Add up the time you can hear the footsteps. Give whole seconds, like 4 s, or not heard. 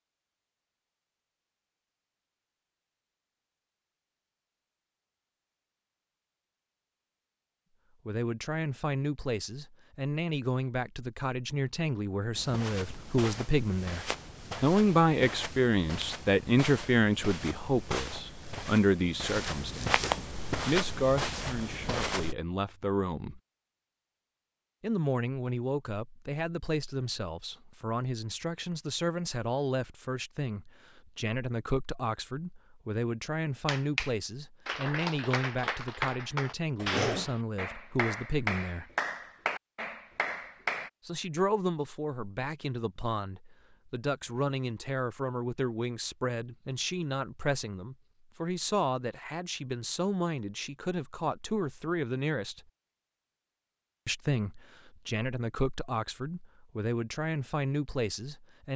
10 s.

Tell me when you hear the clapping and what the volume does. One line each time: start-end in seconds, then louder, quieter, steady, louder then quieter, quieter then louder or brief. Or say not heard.
33.6-40.9 steady.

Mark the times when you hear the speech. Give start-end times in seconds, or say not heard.
8.1-23.4, 24.8-38.9, 41.0-52.6, 54.0-58.7.